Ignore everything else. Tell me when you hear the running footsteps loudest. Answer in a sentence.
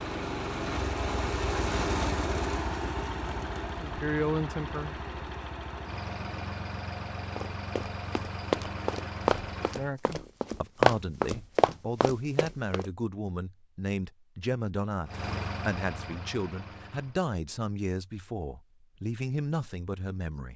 The loudest moment of the running footsteps is at 11 seconds.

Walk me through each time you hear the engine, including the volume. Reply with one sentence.
The engine can be heard from 0.0 to 9.9 s, getting quieter; and briefly from 15.1 to 17.2 s.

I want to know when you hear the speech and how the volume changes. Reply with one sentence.
You can hear the speech briefly from 3.6 to 5.0 s; and from 9.7 to 20.5 s, at a steady volume.